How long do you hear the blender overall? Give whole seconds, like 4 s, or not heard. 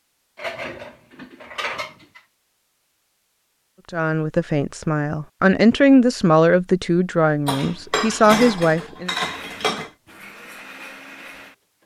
3 s.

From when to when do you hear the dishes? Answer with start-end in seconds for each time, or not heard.
0.3-2.2, 7.5-9.9.